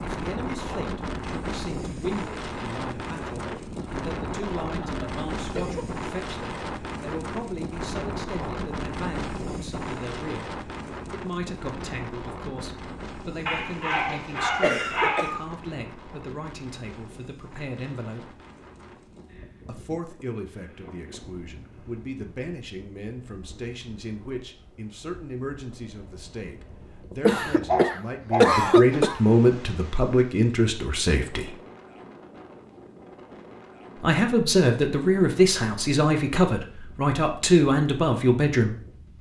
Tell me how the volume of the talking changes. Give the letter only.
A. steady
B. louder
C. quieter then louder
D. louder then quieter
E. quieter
B.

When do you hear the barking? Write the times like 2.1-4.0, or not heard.
13.4-15.4, 27.6-29.1.